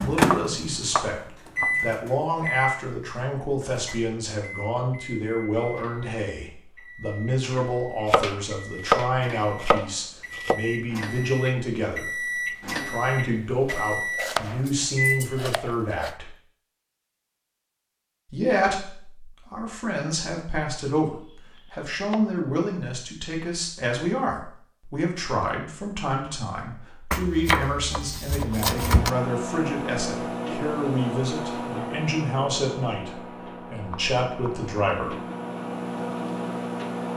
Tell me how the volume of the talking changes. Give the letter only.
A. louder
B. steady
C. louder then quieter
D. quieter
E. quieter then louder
B.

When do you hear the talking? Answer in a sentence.
You can hear the talking from 0.0 to 16.4 s and from 18.3 to 35.2 s.